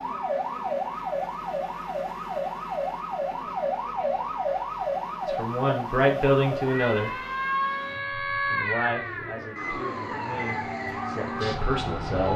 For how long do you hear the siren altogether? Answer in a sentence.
You can hear the siren for 12 seconds altogether.